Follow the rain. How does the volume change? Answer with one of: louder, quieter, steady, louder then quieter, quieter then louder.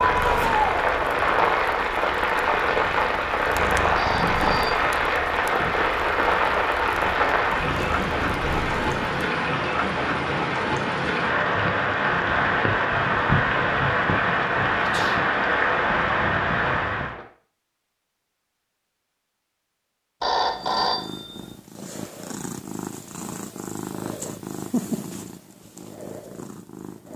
steady.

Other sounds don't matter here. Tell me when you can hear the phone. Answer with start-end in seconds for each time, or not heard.
4.0-4.8, 20.2-21.5.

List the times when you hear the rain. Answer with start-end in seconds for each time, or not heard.
0.0-17.2.